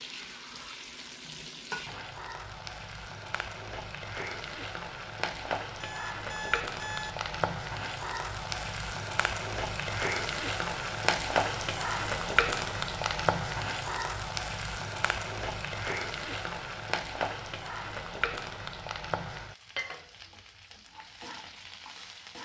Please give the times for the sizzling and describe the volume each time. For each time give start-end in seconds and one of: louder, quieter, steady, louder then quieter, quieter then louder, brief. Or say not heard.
0.0-22.3 louder then quieter.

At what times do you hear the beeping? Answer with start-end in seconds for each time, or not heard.
5.8-7.2.